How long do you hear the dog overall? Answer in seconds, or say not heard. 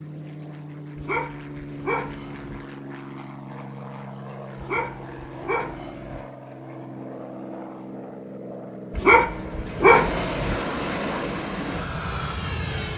5 s.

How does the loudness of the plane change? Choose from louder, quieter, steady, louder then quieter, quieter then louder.
louder.